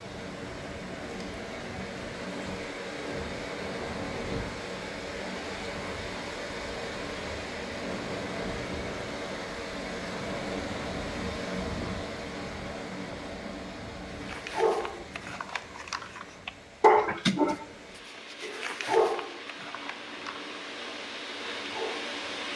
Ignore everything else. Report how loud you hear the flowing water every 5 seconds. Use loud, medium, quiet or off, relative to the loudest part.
loud, loud, loud, medium, loud.